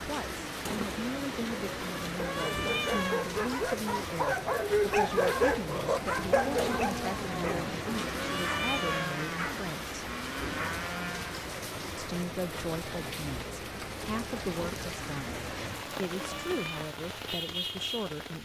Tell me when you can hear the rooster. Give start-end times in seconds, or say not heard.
not heard.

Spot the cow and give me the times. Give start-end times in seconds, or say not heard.
6.0-11.3.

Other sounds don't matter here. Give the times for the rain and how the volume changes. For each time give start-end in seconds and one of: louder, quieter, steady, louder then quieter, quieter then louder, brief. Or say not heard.
0.0-18.4 steady.